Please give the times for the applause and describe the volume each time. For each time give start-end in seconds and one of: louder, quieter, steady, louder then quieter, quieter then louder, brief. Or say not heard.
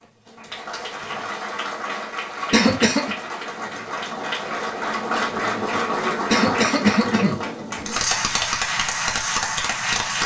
0.0-10.2 louder.